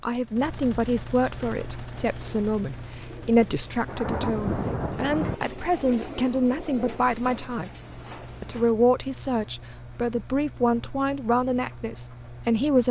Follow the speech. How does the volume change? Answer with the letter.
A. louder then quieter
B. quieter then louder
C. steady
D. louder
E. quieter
C.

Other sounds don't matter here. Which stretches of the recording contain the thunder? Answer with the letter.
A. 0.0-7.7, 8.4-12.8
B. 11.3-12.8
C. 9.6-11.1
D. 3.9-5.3
D.